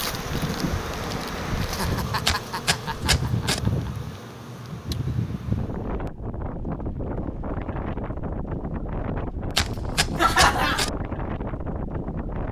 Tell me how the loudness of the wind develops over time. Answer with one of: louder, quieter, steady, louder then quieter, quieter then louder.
steady.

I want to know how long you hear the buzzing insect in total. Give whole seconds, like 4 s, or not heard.
6 s.